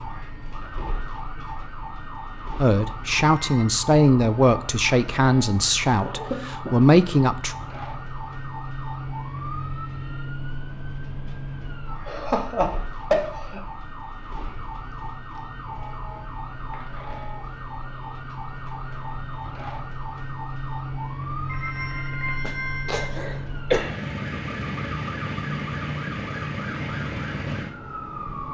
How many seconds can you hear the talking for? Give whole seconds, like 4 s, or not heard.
5 s.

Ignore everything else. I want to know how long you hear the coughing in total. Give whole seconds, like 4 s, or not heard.
4 s.